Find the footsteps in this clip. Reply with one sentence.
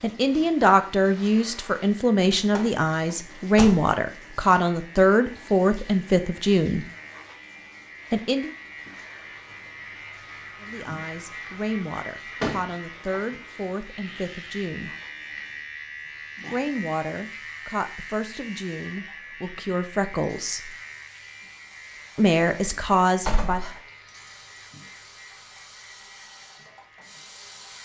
The footsteps can't be heard in this clip.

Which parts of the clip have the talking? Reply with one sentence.
You can hear the talking from 0.0 to 6.8 s, from 8.1 to 8.5 s, from 10.6 to 14.9 s, from 16.5 to 20.8 s and from 22.1 to 23.6 s.